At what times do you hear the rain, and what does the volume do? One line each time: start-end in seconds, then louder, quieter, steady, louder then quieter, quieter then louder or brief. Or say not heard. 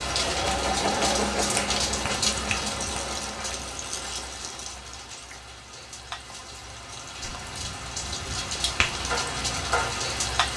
0.0-10.5 quieter then louder.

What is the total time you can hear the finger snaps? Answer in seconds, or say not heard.
3 s.